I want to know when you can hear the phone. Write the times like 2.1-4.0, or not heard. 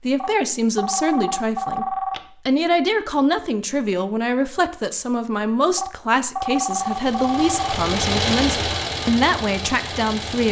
0.1-2.2, 5.8-7.8.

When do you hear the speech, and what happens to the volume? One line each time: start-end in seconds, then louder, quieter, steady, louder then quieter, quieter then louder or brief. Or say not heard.
0.0-10.4 steady.